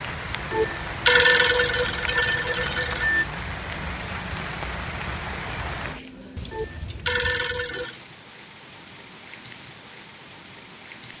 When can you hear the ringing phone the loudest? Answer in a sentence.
The volume of the ringing phone peaks at 1 second.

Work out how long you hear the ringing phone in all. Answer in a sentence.
The ringing phone can be heard for 4 seconds in total.